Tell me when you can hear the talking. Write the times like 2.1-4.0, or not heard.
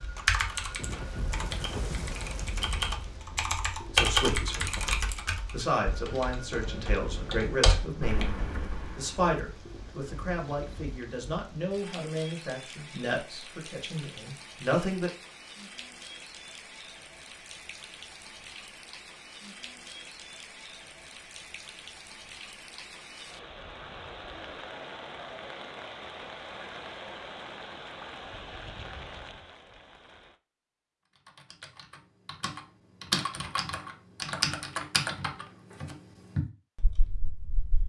3.9-4.9, 5.5-15.1.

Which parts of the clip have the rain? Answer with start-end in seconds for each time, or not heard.
0.0-30.4.